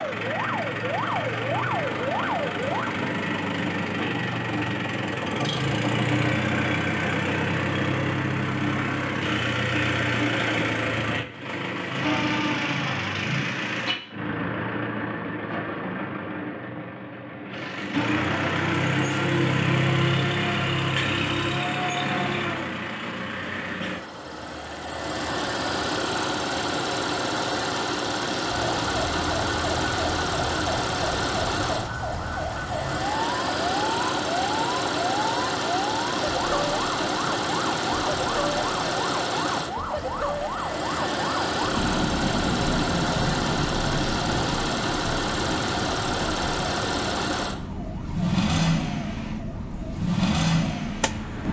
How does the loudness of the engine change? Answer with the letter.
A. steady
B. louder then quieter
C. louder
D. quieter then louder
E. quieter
A.